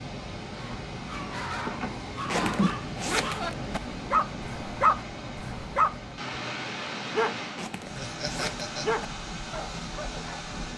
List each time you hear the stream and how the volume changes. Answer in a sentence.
The stream can be heard from 0.0 to 10.7 s, at a steady volume.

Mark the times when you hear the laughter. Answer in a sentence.
You can hear the laughter from 1.5 to 2.8 s and from 7.8 to 8.8 s.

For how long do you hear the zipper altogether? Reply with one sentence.
You can hear the zipper for 3 seconds altogether.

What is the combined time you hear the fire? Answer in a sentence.
The fire can't be heard in this clip.